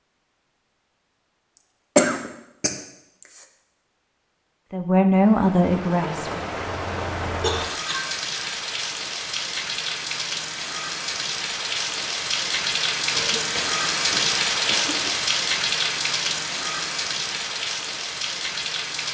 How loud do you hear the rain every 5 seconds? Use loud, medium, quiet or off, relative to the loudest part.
off, medium, loud, loud.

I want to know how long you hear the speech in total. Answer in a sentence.
You can hear the speech for 2 seconds altogether.